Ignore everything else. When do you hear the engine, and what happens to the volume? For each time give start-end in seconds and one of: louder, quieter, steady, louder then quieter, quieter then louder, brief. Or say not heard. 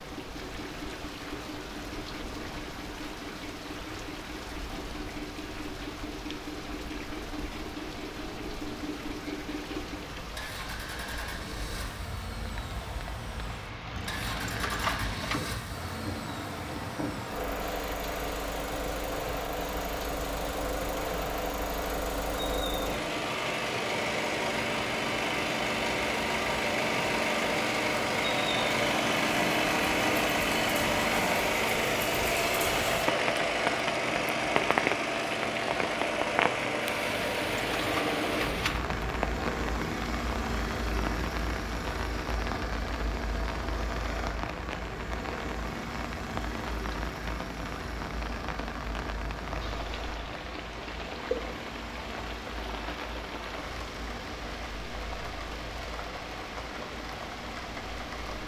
0.0-58.4 louder then quieter.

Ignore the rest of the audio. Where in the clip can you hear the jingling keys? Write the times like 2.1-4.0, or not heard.
13.9-15.6, 37.0-38.9.